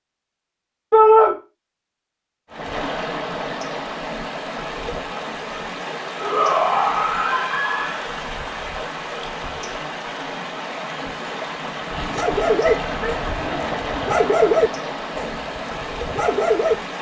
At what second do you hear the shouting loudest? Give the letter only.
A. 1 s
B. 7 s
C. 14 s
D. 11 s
A.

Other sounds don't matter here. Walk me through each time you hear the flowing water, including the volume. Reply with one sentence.
You can hear the flowing water from 2.5 to 16.9 s, at a steady volume.